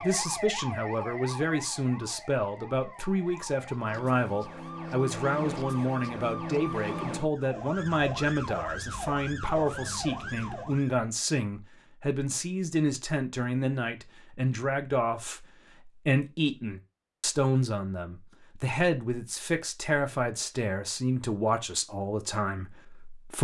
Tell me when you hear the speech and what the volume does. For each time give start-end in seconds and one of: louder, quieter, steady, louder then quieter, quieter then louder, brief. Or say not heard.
0.0-23.3 steady.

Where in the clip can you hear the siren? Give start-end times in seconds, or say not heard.
0.0-11.0.